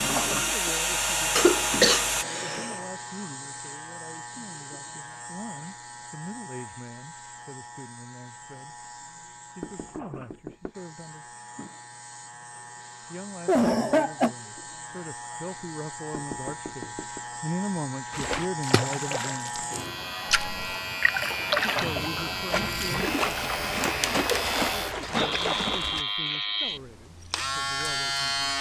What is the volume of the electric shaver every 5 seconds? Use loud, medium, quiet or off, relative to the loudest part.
medium, quiet, quiet, medium, loud, loud.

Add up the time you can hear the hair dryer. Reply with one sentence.
You can hear the hair dryer for 2 seconds altogether.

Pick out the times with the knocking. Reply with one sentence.
You can hear the knocking from 9.6 to 10.8 s and from 16.1 to 17.2 s.